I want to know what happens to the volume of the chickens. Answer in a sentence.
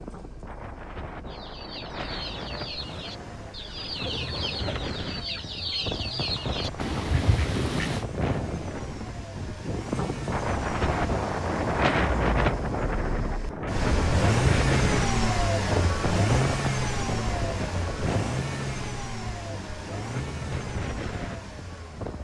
The loudness of the chickens goes up.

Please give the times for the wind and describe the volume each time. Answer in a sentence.
You can hear the wind from 0.0 to 22.2 s, getting louder then quieter.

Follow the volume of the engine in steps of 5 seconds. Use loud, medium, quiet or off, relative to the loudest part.
quiet, quiet, loud, loud, medium.